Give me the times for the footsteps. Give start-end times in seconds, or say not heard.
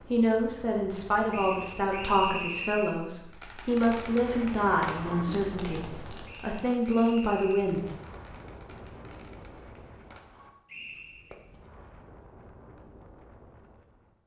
not heard.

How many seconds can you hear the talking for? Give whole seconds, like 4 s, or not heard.
8 s.